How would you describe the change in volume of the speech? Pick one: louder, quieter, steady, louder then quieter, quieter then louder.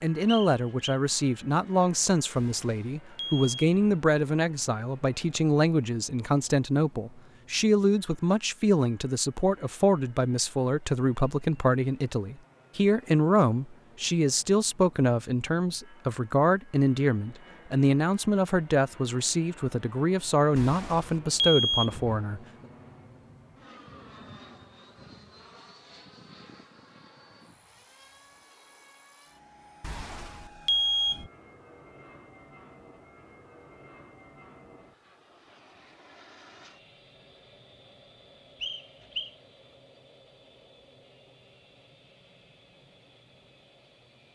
steady.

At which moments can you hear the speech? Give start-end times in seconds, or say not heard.
0.0-22.4.